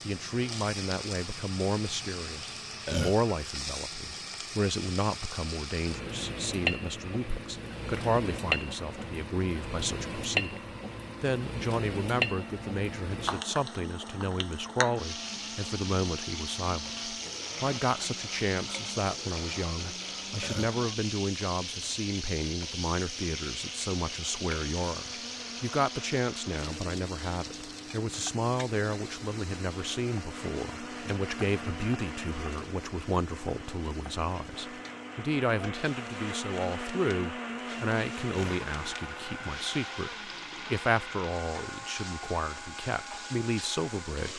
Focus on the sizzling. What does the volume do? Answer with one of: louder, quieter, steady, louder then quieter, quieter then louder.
quieter.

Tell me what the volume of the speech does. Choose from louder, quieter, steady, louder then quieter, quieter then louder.
steady.